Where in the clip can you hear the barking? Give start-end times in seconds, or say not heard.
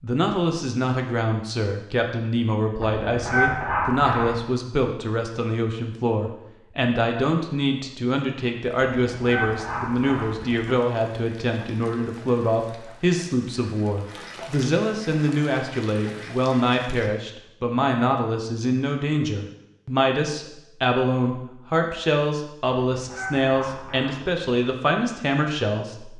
2.8-4.4, 8.9-10.7, 22.9-24.4.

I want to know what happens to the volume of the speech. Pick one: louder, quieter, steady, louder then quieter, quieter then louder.
steady.